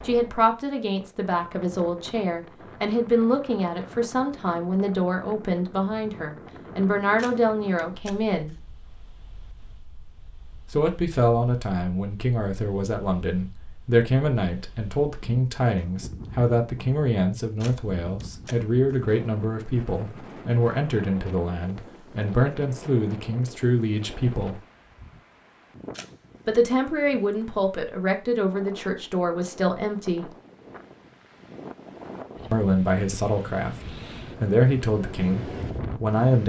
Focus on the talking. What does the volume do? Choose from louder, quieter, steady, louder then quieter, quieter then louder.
steady.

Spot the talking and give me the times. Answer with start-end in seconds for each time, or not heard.
0.1-8.6, 10.7-24.6, 26.4-30.3, 32.5-36.4.